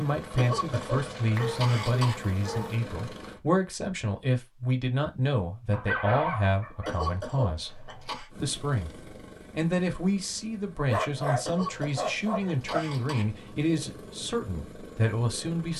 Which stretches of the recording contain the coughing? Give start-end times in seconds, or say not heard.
0.3-2.1, 6.8-8.3, 11.4-13.2.